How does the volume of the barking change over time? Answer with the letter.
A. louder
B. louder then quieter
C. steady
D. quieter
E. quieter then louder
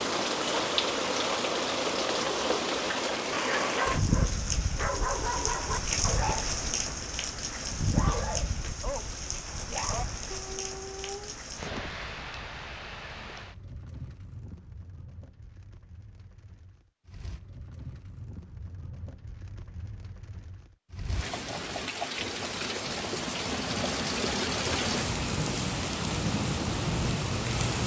D.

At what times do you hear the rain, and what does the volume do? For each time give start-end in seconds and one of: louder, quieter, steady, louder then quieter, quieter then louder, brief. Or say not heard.
0.0-27.8 quieter then louder.